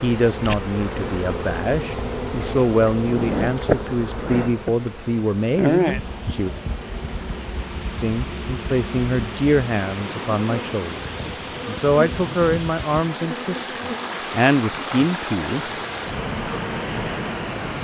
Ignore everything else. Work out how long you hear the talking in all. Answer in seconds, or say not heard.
14 s.